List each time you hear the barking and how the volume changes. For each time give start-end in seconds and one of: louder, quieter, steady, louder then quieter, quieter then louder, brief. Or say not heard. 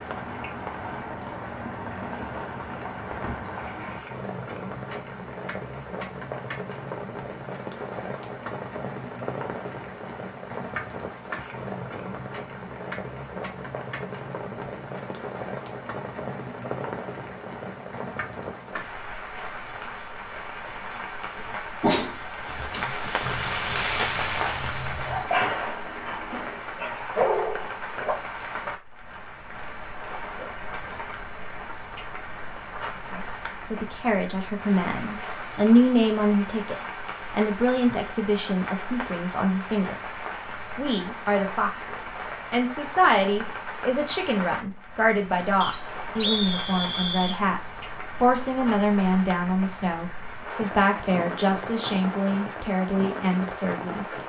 21.4-28.1 quieter then louder.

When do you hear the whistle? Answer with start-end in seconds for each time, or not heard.
45.6-47.4.